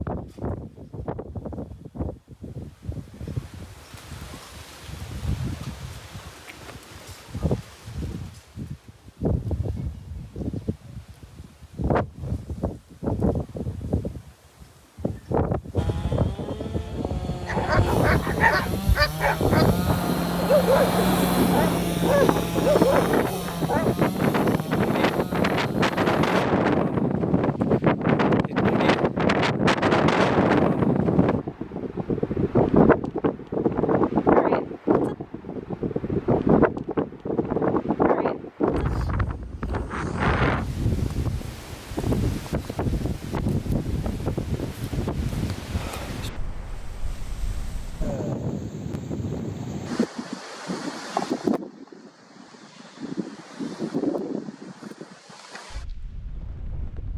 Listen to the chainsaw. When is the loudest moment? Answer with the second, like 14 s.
21 s.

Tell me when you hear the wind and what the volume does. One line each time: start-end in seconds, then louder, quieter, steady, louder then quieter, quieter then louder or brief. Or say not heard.
0.0-57.1 louder then quieter.